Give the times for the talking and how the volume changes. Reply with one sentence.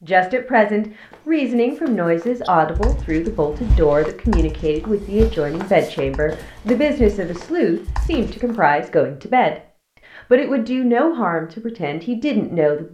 You can hear the talking from 0.0 to 9.6 s, at a steady volume; and briefly from 10.2 to 12.8 s.